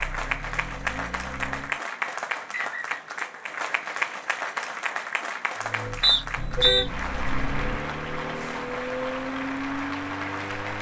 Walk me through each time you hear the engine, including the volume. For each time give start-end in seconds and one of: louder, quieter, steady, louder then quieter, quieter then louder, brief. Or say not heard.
0.0-1.8 brief
5.5-10.7 louder.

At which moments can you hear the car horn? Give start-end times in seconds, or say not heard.
6.3-7.8.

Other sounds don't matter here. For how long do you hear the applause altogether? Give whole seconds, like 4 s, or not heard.
11 s.